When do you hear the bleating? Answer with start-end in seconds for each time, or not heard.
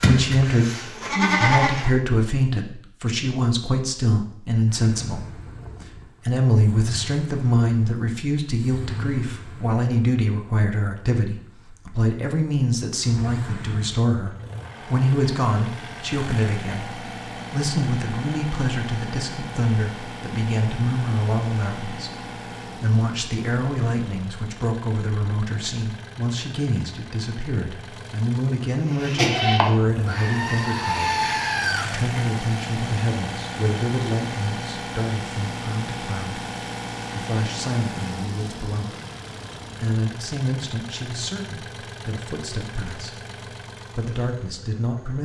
0.0-1.9, 28.9-31.9.